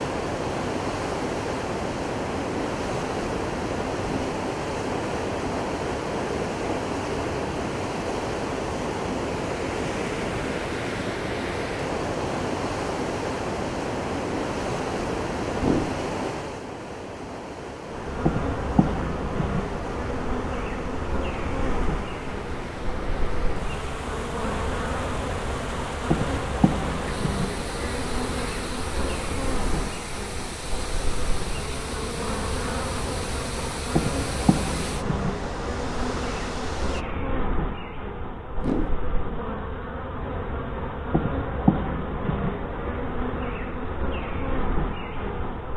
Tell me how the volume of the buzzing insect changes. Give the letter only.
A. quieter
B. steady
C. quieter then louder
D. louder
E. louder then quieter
B.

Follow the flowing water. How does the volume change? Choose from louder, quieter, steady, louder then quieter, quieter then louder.
quieter.